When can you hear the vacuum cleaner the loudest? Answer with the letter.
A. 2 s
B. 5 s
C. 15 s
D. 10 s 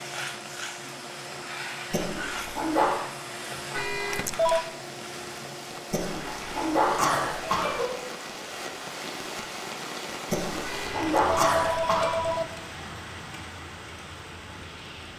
A.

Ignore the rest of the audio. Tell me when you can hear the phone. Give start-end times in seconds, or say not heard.
3.7-4.7, 10.6-12.4.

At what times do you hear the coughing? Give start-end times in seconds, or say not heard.
1.9-3.0, 5.9-7.8, 10.3-12.1.